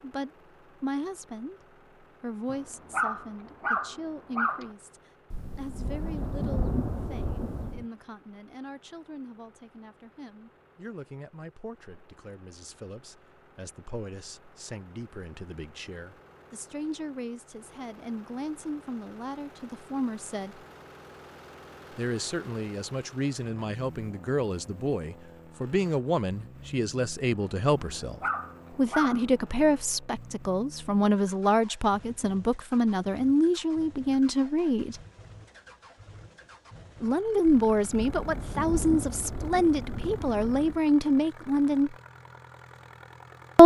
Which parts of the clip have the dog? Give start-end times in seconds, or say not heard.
2.5-4.7, 27.8-29.3.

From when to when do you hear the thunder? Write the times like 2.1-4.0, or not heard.
5.3-7.8, 37.5-40.9.